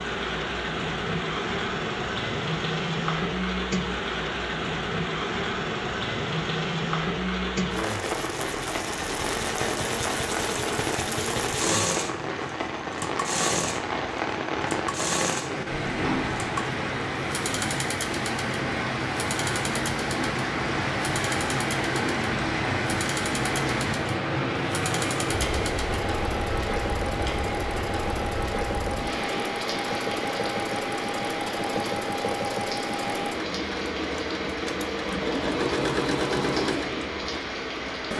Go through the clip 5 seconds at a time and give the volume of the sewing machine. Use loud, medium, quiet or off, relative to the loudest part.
loud, loud, loud, medium, medium, medium, loud, loud.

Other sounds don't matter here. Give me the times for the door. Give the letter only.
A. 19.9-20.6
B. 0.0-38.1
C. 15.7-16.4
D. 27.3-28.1
C.